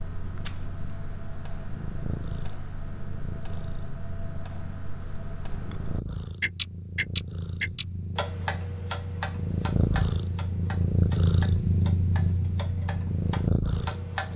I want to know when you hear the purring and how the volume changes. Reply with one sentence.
You can hear the purring from 0.0 to 14.3 s, getting louder.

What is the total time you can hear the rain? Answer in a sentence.
The rain can't be heard in this clip.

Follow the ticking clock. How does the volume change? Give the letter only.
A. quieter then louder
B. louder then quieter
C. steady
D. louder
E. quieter
B.